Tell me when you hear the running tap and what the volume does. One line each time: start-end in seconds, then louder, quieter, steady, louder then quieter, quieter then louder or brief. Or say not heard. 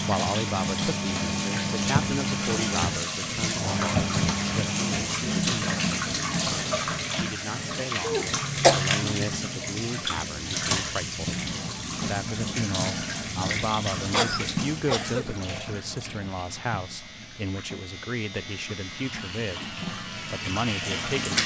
0.0-21.4 quieter.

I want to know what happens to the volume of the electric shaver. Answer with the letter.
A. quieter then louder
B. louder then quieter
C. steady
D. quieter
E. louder
E.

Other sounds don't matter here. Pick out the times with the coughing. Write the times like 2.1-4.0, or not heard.
8.0-8.8, 14.1-15.2.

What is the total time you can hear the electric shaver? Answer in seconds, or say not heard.
5 s.